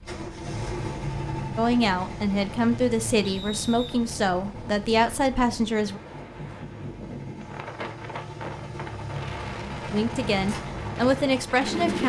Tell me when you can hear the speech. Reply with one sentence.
The speech can be heard from 1.6 to 6.0 s and from 9.8 to 12.0 s.